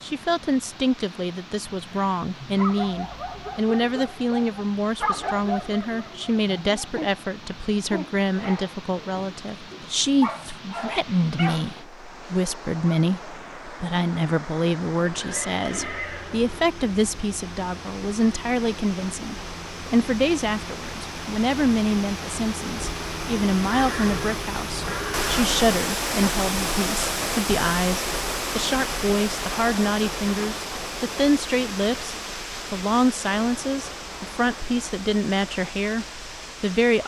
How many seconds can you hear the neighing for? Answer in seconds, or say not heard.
3 s.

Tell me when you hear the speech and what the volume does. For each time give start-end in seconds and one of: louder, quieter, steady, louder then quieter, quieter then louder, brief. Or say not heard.
0.0-37.0 steady.